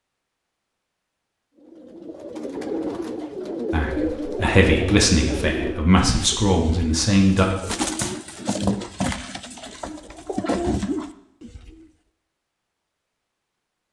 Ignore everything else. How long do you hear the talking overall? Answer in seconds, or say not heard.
4 s.